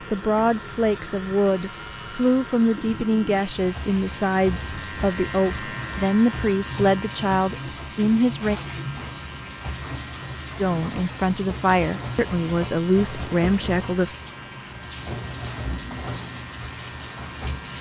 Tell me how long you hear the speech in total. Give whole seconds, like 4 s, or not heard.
12 s.